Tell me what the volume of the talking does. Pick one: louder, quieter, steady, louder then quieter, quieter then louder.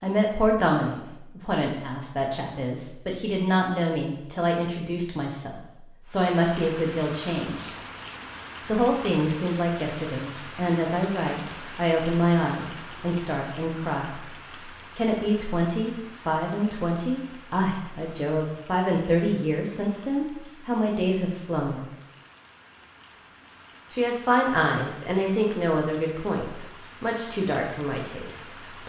steady.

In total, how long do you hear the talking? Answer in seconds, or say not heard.
25 s.